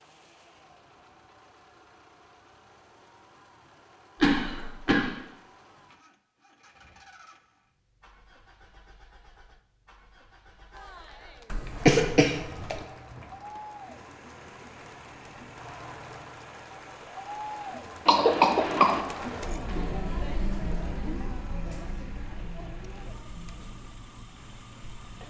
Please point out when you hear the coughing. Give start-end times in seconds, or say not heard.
4.2-5.2, 11.5-12.8, 18.1-19.0.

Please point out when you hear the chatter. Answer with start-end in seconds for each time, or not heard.
10.7-25.2.